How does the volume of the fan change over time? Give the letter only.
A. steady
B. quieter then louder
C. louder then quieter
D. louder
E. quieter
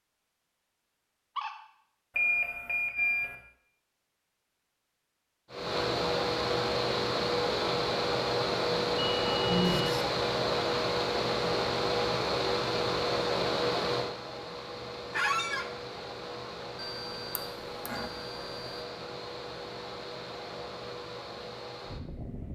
E.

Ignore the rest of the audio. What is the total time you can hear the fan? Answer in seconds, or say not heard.
17 s.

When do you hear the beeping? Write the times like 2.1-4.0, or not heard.
2.1-3.4, 8.9-9.9, 16.8-18.8.